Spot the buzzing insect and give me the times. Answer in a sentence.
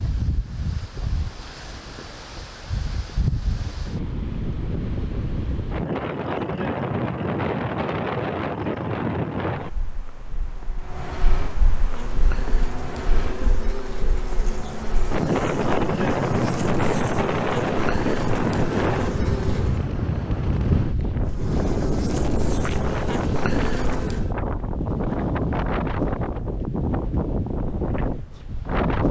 You can hear the buzzing insect from 11.8 to 19.9 s and from 21.2 to 24.3 s.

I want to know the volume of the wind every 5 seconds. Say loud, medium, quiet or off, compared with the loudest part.
medium, loud, quiet, loud, loud, loud.